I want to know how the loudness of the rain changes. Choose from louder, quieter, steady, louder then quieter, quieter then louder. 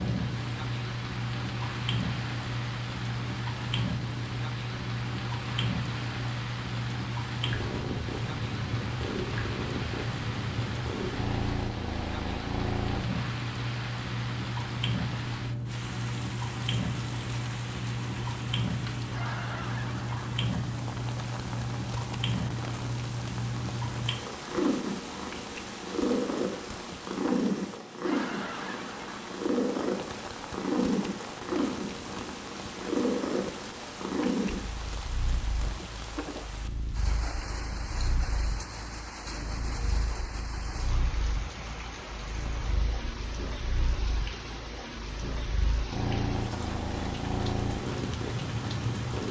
steady.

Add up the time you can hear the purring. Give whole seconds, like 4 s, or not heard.
49 s.